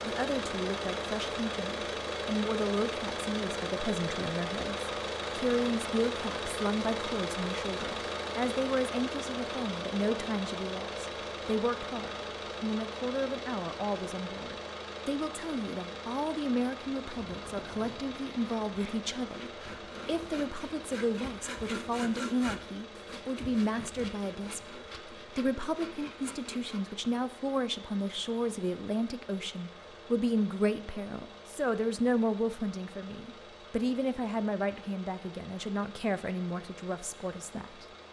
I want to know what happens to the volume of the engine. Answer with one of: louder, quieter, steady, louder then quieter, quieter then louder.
quieter.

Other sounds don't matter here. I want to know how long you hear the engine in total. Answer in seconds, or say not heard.
38 s.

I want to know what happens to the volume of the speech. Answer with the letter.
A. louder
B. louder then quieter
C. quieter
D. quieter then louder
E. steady
E.